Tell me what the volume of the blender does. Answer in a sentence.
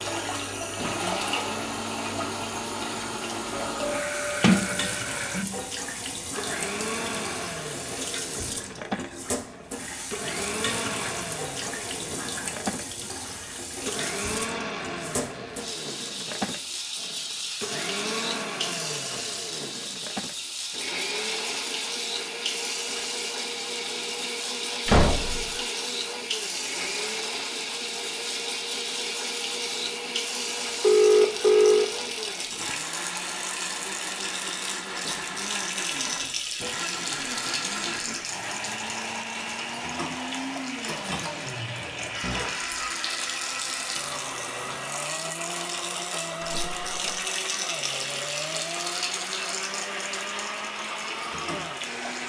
The loudness of the blender stays about the same.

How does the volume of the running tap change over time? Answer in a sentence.
The volume of the running tap stays about the same.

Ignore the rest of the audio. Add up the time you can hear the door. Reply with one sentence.
The door can be heard for 3 seconds in total.